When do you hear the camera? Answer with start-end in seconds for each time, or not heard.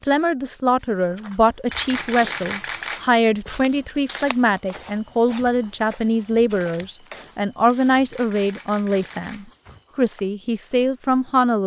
1.6-3.1, 8.1-9.5.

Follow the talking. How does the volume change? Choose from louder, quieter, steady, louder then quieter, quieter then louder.
steady.